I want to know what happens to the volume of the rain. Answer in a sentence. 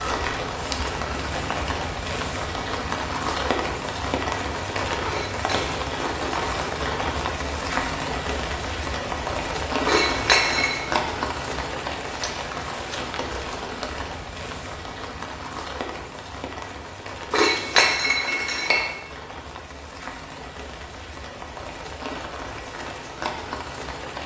The volume of the rain goes down.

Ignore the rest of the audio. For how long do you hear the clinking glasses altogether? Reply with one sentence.
You can hear the clinking glasses for 3 seconds altogether.